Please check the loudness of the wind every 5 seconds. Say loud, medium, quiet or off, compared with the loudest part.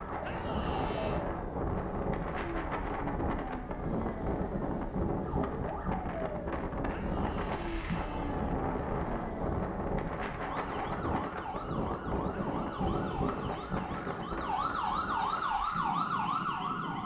loud, loud, loud, medium.